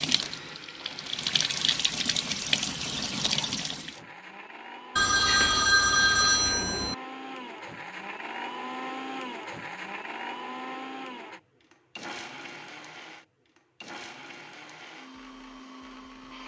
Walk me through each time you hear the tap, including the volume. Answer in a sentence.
The tap can be heard from 0.0 to 4.0 s, getting louder.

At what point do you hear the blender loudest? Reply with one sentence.
The loudest moment of the blender is at 9 seconds.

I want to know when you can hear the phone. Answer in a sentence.
The phone can be heard from 5.0 to 7.0 s.